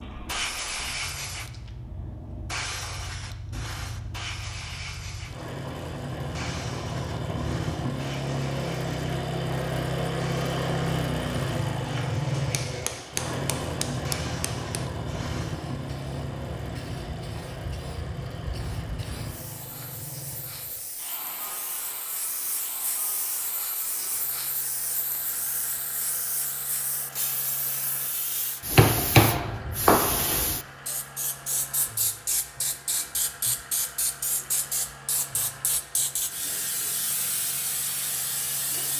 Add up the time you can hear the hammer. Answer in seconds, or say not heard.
4 s.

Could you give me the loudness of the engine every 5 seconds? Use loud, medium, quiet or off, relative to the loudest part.
quiet, loud, loud, medium, quiet, quiet, quiet, quiet.